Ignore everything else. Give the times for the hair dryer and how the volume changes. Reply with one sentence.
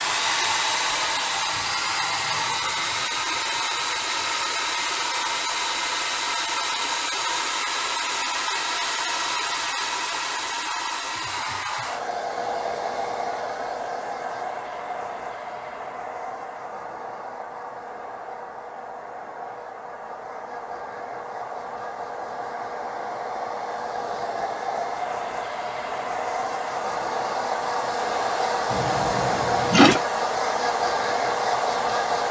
You can hear the hair dryer from 0.0 to 32.2 s, getting quieter then louder.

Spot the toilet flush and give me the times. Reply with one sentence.
You can hear the toilet flush from 28.7 to 30.0 s.